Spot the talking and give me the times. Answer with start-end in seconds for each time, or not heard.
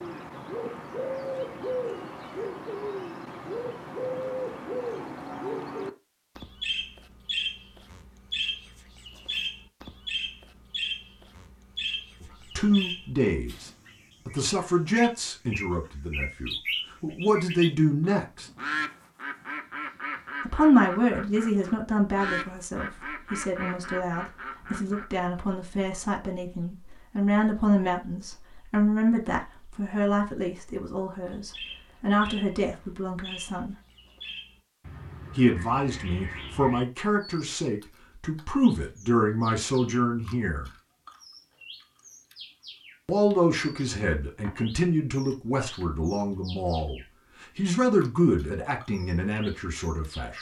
12.2-18.4, 20.4-33.8, 35.4-40.7, 43.0-50.3.